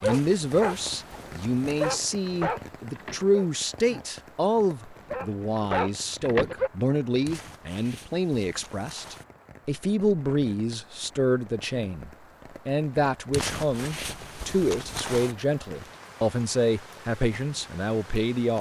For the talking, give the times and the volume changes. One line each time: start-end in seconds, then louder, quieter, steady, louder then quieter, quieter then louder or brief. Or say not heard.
0.0-18.5 steady.